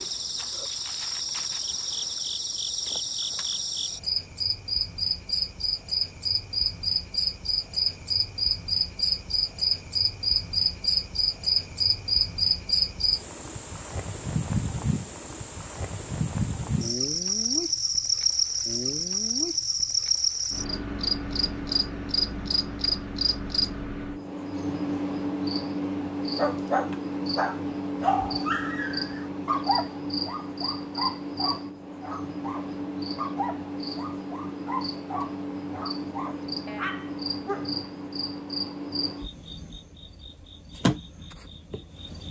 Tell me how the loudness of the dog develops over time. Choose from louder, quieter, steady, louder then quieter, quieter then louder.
quieter.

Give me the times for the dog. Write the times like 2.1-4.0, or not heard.
26.4-37.9.